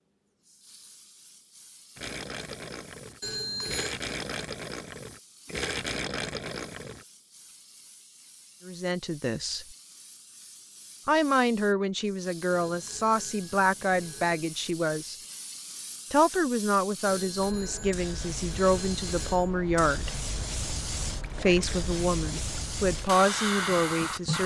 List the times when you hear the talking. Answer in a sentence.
You can hear the talking from 8.7 to 9.7 s, from 11.1 to 15.2 s, from 16.1 to 20.1 s and from 21.4 to 24.4 s.